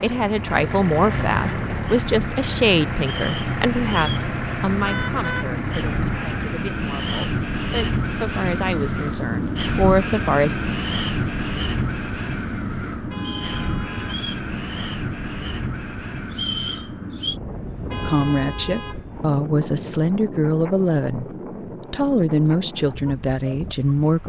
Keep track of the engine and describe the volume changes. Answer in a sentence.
The loudness of the engine stays about the same.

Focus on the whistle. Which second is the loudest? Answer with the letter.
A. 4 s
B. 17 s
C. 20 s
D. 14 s
B.